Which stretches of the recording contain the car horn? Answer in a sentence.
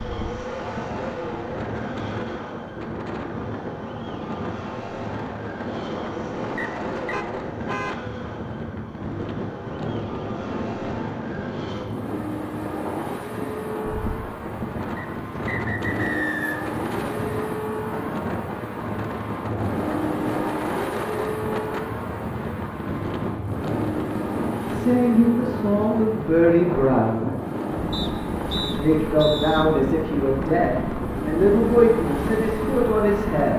You can hear the car horn from 7.1 to 8.1 s.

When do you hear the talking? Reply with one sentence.
The talking can be heard from 24.6 to 27.4 s and from 28.8 to 33.5 s.